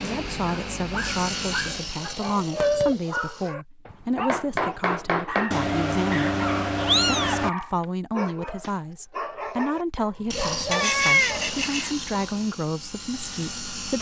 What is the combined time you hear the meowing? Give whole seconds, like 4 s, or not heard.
4 s.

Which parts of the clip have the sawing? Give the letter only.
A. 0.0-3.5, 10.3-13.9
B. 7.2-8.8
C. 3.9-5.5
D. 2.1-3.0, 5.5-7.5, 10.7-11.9
A.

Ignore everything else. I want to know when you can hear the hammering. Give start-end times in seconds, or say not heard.
3.9-5.5.